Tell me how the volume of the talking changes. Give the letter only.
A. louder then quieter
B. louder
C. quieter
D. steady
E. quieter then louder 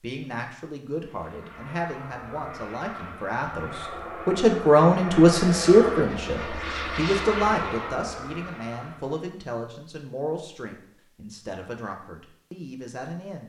A.